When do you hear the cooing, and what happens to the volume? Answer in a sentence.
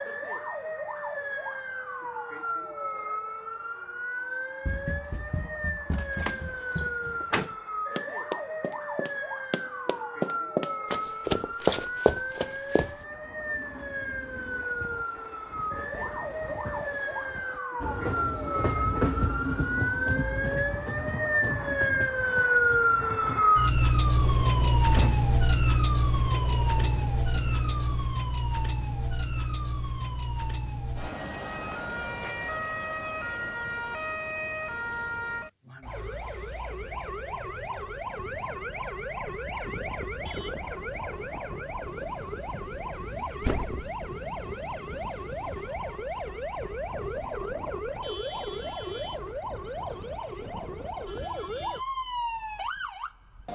You can't hear the cooing here.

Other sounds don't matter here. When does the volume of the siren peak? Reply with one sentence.
The volume of the siren peaks at 23 seconds.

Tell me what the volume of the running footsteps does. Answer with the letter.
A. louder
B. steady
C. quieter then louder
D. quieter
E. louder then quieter
A.